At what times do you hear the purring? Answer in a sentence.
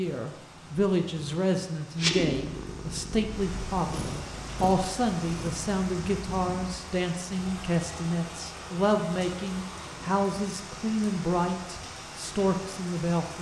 The purring can be heard from 1.9 to 6.8 s.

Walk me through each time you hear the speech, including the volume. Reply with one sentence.
The speech can be heard from 0.0 to 13.3 s, at a steady volume.